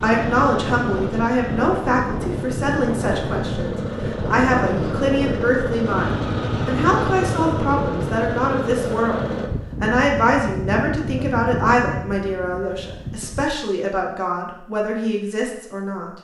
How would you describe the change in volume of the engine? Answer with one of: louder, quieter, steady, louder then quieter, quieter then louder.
louder.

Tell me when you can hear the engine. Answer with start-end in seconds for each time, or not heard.
0.0-9.5.